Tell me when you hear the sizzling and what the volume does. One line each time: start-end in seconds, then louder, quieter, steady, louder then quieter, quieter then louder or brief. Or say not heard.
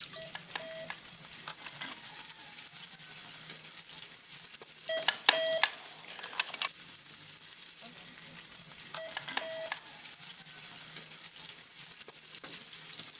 0.0-13.1 steady.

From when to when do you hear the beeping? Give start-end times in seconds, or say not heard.
0.1-1.9, 4.8-6.7, 8.9-9.8.